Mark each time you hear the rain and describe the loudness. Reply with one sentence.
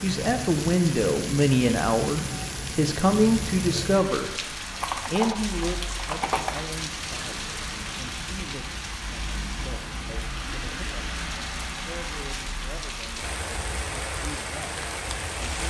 The rain can be heard from 0.0 to 15.6 s, at a steady volume.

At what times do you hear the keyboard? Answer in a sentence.
The keyboard can be heard from 4.8 to 6.6 s.